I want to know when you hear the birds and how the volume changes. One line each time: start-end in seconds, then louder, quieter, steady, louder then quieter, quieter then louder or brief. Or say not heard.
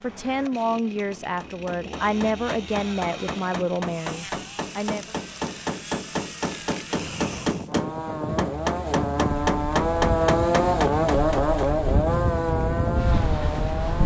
not heard.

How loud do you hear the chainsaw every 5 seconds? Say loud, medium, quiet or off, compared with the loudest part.
quiet, medium, loud.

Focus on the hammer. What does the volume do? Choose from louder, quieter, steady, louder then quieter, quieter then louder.
louder.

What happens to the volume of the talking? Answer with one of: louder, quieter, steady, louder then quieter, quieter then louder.
quieter.